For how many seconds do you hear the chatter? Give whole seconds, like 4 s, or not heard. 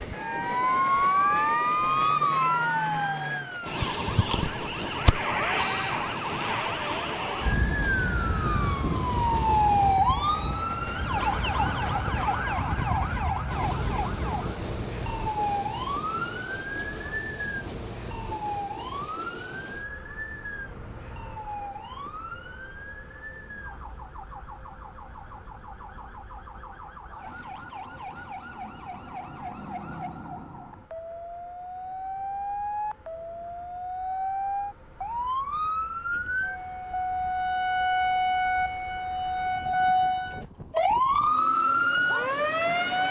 not heard.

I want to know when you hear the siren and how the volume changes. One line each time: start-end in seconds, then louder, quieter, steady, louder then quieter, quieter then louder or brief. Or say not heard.
0.0-43.0 quieter then louder.